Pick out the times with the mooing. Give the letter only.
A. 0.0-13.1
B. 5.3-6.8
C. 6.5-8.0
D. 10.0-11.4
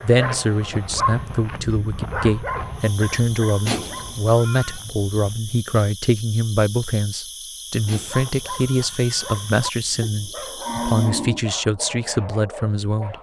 D.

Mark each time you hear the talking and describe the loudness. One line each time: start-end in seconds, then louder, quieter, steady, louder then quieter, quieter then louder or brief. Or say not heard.
0.0-13.1 steady.